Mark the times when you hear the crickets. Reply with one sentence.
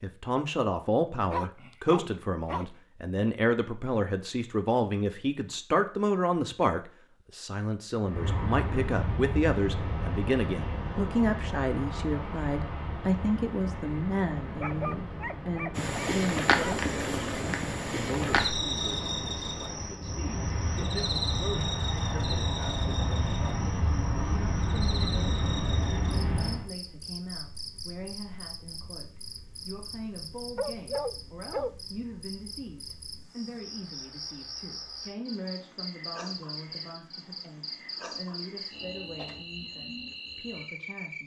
The crickets can be heard from 15.8 to 41.2 s.